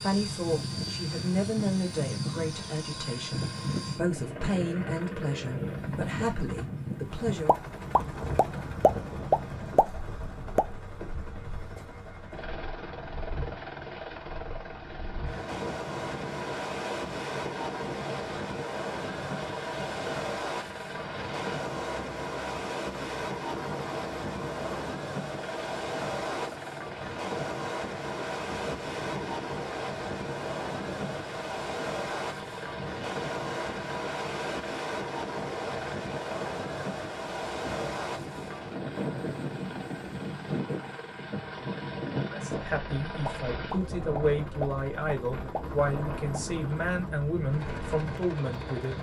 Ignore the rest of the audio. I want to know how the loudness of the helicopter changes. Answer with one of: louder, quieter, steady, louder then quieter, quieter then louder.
steady.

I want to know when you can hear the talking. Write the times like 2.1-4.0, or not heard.
0.0-7.5, 42.3-48.9.